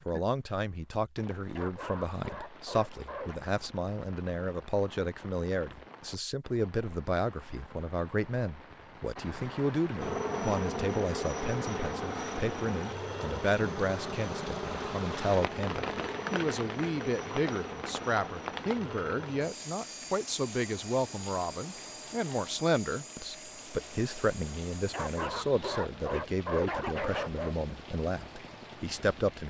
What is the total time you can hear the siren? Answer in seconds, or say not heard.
not heard.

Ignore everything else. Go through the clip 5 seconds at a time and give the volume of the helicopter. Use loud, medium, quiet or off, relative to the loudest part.
off, off, loud, medium, medium, quiet.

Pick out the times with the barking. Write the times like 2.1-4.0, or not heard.
1.6-3.4, 24.9-27.6.